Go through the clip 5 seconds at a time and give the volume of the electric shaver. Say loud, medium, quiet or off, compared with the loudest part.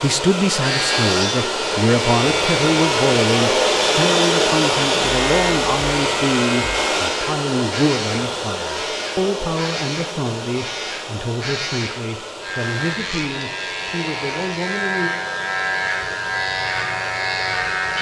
loud, medium, medium, loud.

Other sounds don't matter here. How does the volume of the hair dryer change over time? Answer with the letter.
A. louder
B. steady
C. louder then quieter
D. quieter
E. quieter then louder
D.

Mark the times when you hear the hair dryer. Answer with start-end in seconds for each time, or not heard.
0.0-17.9.